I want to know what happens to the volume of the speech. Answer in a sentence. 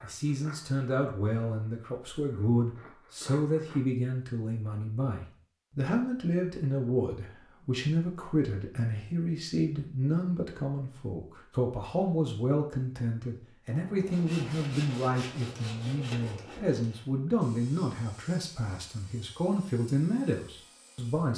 The volume of the speech stays about the same.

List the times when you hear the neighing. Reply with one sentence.
You can't hear the neighing here.